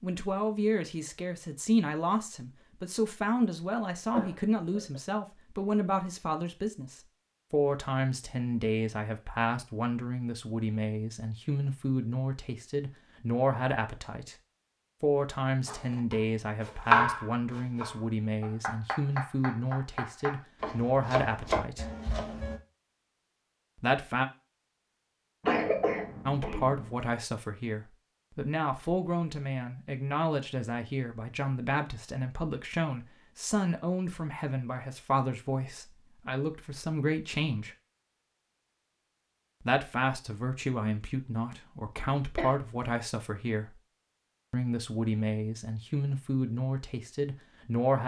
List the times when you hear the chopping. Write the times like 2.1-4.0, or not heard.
15.7-22.6.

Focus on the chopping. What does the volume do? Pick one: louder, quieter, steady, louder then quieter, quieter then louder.
quieter then louder.